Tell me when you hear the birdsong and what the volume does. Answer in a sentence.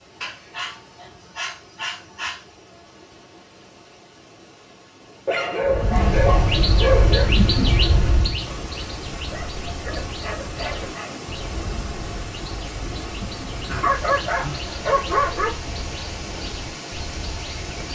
The birdsong can be heard from 5.7 to 17.8 s, getting quieter.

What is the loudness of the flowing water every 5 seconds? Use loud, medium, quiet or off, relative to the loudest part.
quiet, loud, loud, loud.